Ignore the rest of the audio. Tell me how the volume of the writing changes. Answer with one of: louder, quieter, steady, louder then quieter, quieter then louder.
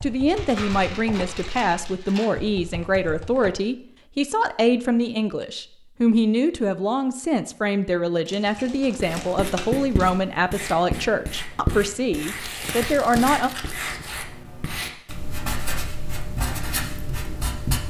steady.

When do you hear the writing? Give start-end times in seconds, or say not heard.
8.9-17.8.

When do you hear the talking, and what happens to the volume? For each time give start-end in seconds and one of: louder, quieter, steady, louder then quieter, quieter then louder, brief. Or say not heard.
0.0-13.5 steady.